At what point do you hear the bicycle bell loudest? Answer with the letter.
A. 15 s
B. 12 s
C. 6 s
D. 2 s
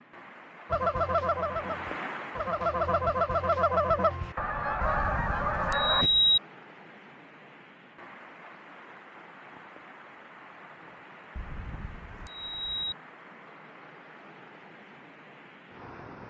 C.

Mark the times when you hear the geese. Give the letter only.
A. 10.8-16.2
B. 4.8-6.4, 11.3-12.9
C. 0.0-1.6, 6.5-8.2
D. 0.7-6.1
D.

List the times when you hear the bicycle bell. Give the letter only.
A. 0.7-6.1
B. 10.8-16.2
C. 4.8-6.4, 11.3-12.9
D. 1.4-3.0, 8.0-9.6
C.